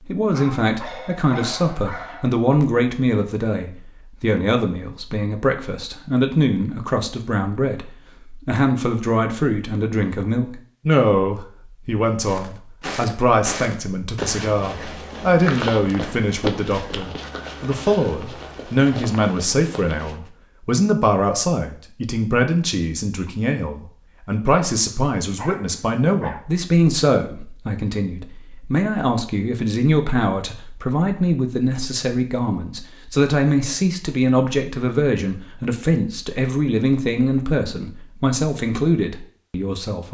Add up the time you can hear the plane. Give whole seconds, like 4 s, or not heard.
not heard.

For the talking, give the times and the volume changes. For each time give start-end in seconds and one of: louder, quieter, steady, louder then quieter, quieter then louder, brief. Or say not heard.
0.1-40.0 steady.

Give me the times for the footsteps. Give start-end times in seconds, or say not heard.
12.2-20.3.